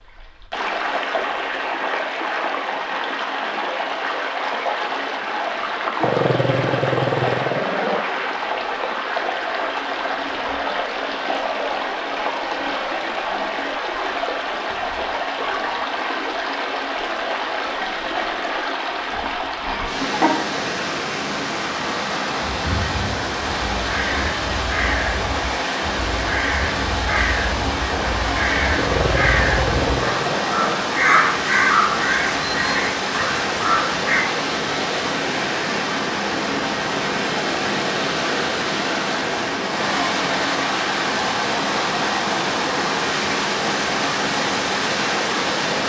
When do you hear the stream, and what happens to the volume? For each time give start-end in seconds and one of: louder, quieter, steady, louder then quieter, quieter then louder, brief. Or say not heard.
0.0-45.8 steady.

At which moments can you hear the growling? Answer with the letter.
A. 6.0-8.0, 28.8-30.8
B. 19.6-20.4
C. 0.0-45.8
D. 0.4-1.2
A.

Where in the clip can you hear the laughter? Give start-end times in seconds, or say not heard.
19.6-20.4.